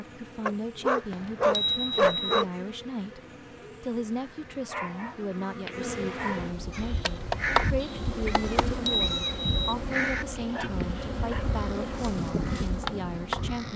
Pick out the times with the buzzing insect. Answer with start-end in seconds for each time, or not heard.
0.0-13.7.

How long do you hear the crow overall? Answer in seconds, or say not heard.
7 s.